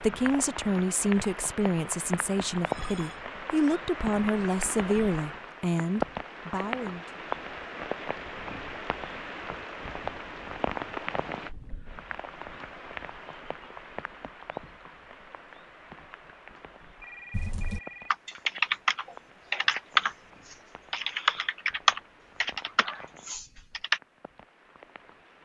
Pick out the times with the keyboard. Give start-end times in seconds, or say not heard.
17.3-24.0.